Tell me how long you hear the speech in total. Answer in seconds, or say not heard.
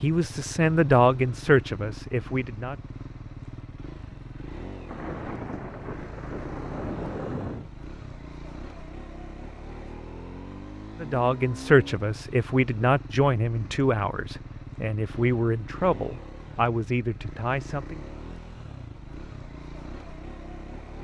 10 s.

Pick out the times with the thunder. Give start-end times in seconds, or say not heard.
4.8-7.7.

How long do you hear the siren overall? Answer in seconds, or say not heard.
not heard.